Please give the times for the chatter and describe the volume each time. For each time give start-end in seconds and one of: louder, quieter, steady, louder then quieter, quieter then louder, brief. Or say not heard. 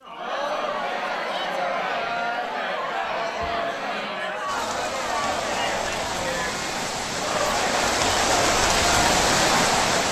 0.0-10.0 steady.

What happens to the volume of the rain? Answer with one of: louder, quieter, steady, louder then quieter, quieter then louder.
louder.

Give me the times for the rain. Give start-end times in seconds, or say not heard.
4.5-10.0.